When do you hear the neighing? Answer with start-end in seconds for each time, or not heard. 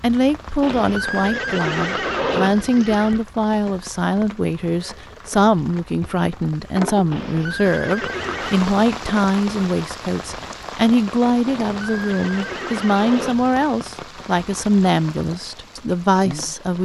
0.6-3.2, 7.1-8.8, 11.4-13.6.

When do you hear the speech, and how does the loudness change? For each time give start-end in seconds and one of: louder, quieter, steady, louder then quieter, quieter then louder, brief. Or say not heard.
0.0-16.7 steady.